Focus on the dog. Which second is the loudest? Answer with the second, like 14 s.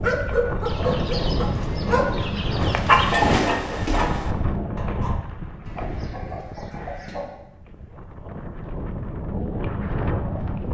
3 s.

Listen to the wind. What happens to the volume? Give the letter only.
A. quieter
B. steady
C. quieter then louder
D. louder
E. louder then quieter
C.